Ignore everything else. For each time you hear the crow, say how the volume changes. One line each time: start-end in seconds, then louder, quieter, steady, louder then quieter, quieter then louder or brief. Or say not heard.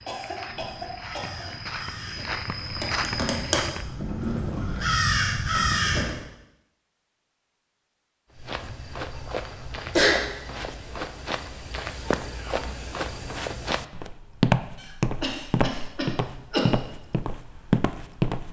0.4-6.2 louder.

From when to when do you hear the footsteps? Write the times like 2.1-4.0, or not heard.
0.0-4.0, 8.3-18.4.